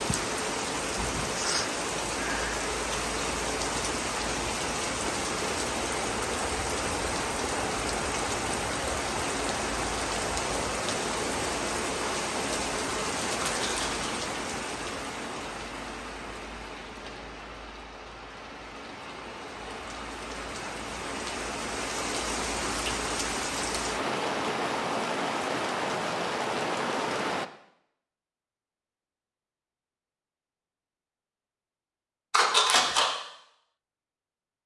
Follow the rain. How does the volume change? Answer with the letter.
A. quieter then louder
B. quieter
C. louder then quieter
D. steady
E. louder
A.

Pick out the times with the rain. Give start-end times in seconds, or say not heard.
0.0-27.5.